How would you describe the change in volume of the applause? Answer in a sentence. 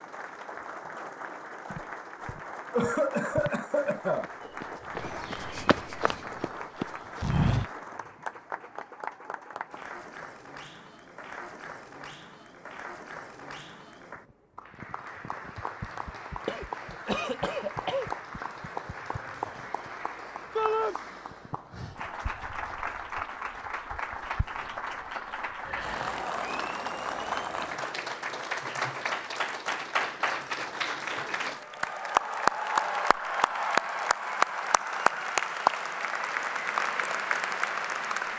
The loudness of the applause goes up.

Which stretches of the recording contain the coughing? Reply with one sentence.
The coughing can be heard from 2.7 to 4.3 s, from 16.4 to 18.1 s and from 25.6 to 26.2 s.